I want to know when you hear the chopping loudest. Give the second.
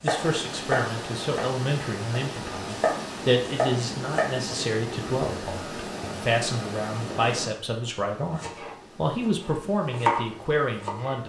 10 s.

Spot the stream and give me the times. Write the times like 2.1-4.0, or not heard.
0.0-11.2.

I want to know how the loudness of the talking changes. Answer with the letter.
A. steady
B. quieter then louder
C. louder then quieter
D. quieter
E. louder
A.